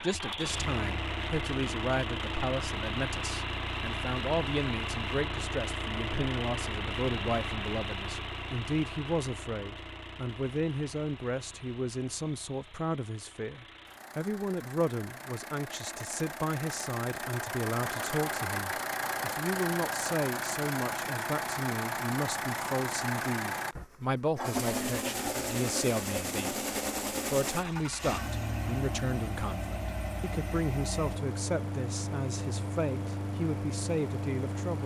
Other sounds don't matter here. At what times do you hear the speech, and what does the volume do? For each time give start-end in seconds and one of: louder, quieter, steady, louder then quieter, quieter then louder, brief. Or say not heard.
0.0-34.8 steady.